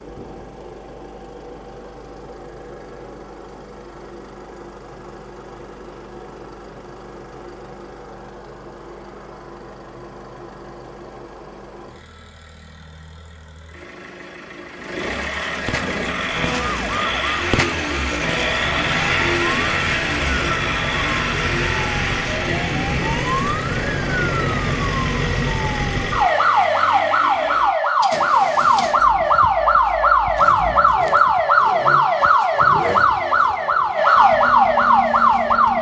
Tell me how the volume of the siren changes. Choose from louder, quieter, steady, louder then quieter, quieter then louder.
louder.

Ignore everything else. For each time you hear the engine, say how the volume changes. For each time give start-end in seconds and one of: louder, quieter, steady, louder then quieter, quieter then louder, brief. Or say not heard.
0.0-35.7 louder then quieter.